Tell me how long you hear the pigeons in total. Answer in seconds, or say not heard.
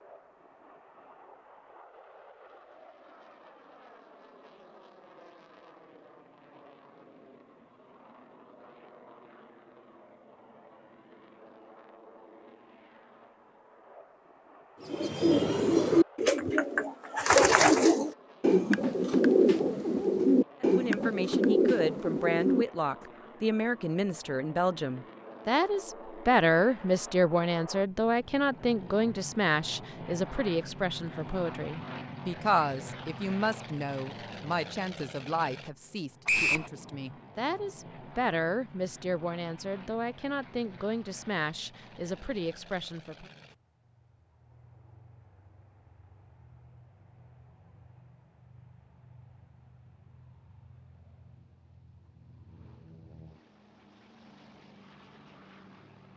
8 s.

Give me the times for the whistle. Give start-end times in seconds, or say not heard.
36.2-36.7.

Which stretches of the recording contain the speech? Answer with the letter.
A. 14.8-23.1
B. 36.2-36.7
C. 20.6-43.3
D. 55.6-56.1
C.